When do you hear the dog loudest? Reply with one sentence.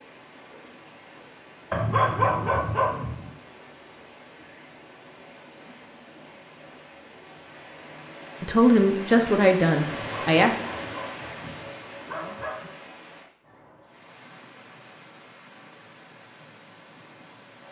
The volume of the dog peaks at 2 seconds.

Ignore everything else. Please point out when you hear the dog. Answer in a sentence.
You can hear the dog from 1.7 to 3.3 s and from 10.0 to 12.7 s.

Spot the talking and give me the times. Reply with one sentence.
The talking can be heard from 8.4 to 10.6 s.